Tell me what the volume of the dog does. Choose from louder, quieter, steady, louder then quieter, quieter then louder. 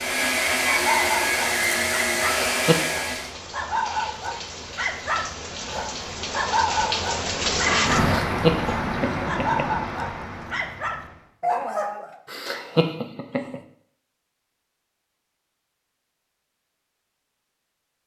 steady.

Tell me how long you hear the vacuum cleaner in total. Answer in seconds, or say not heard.
3 s.